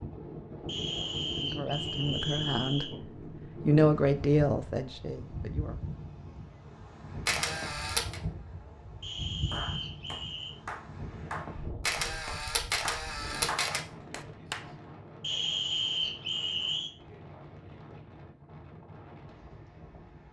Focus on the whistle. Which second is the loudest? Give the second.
16 s.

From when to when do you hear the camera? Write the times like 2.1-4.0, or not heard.
7.2-8.2, 11.8-13.8.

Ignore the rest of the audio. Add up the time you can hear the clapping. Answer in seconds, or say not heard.
5 s.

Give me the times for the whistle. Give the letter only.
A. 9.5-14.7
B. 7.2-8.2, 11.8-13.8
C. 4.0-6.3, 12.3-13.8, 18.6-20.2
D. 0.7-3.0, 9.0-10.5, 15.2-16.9
D.